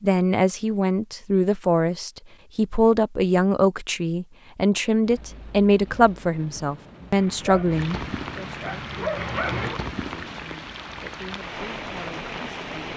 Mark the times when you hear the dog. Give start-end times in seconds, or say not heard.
7.1-9.8.